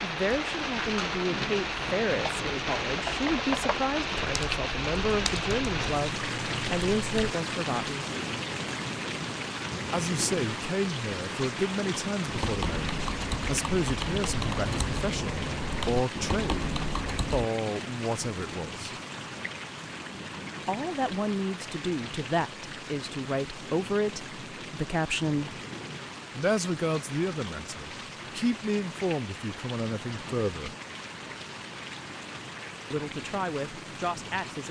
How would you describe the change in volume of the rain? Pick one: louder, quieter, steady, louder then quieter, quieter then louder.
quieter.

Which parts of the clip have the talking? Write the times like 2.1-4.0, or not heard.
0.0-8.1, 9.9-16.7, 17.3-18.9, 20.6-25.6, 26.4-30.8, 32.9-34.6.